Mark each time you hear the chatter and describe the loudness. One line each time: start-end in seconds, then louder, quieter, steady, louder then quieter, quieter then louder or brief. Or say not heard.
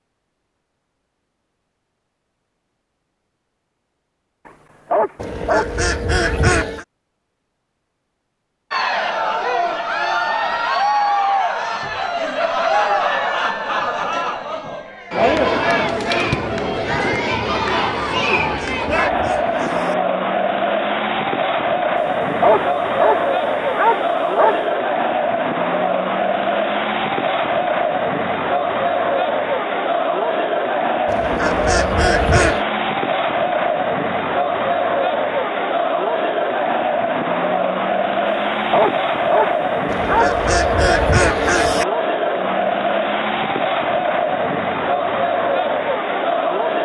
8.7-46.7 steady.